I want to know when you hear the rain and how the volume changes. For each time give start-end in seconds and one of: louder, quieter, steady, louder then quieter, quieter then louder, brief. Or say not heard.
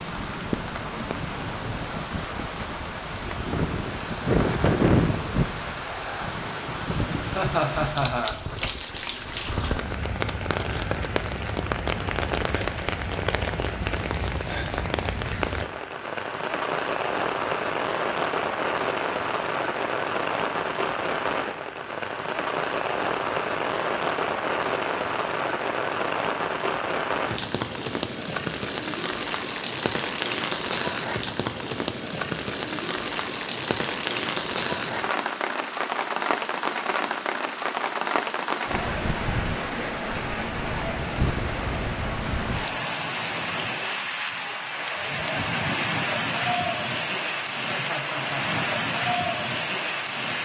0.0-50.4 steady.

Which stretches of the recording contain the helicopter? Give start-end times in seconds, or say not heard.
not heard.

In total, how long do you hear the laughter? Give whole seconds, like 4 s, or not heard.
2 s.